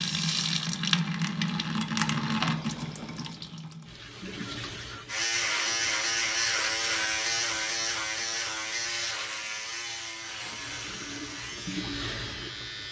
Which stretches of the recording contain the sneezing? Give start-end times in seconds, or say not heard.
not heard.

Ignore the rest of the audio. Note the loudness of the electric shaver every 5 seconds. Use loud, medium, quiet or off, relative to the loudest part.
off, loud, medium.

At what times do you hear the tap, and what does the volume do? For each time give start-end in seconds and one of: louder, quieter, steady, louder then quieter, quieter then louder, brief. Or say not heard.
0.0-5.2 quieter
10.2-12.8 brief.